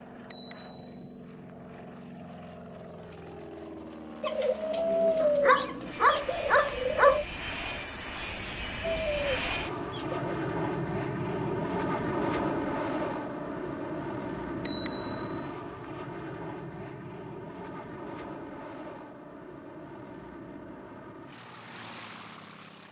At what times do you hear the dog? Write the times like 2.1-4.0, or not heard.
5.2-7.2.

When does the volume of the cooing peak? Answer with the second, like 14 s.
5 s.